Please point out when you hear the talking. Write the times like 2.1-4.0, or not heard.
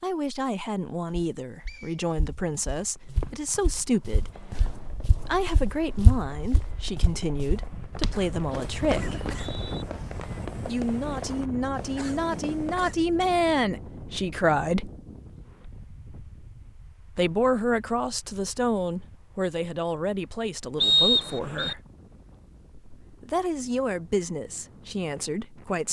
0.0-9.2, 10.7-14.9, 17.1-21.8, 23.0-25.8.